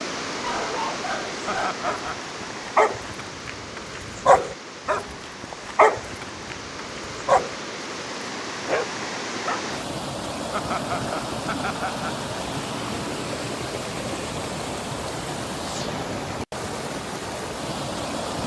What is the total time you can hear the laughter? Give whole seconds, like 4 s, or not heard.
3 s.